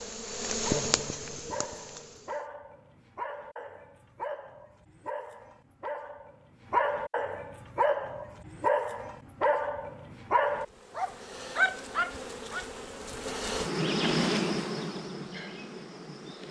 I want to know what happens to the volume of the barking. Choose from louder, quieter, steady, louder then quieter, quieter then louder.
louder.